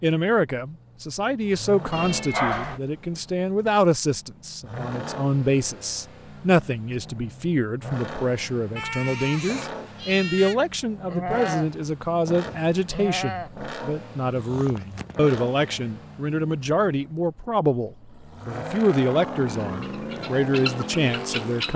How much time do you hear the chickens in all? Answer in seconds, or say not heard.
2 s.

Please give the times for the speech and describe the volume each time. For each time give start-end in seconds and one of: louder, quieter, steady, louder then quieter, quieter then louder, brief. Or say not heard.
0.0-21.7 steady.